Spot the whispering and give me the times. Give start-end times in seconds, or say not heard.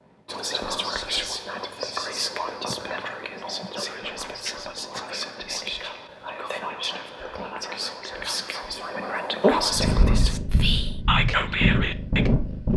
0.2-12.3.